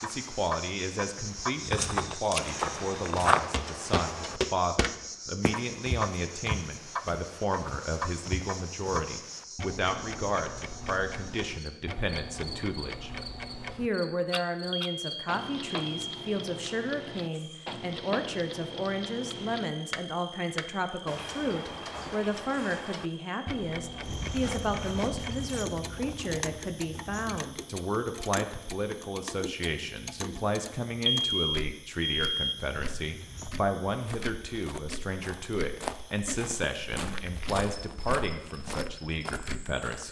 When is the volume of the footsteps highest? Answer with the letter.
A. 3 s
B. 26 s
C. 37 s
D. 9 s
A.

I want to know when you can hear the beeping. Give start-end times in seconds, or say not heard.
14.7-16.1, 31.1-32.6.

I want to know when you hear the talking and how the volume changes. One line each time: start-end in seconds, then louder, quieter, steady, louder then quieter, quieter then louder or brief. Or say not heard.
0.0-13.1 steady
13.8-40.0 steady.